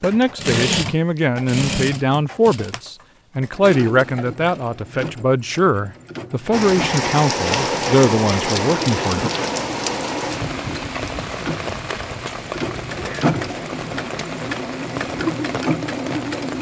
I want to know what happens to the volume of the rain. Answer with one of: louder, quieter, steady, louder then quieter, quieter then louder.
quieter.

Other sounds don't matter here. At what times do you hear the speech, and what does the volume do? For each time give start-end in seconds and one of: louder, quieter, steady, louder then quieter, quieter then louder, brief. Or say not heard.
0.0-9.3 steady.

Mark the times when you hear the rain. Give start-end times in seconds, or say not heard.
6.5-16.5.